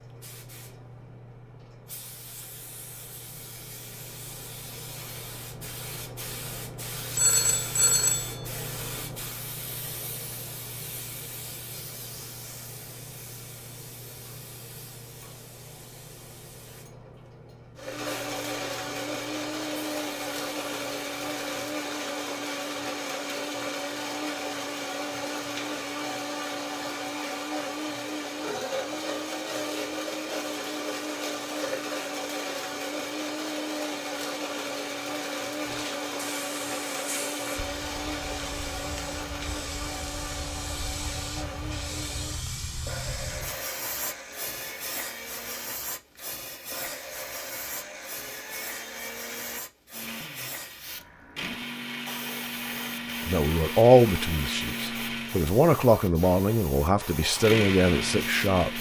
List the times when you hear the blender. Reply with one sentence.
You can hear the blender from 17.8 to 55.5 s and from 57.4 to 58.7 s.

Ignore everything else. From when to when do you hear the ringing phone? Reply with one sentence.
The ringing phone can be heard from 7.2 to 8.4 s.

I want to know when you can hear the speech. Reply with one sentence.
The speech can be heard from 53.2 to 58.7 s.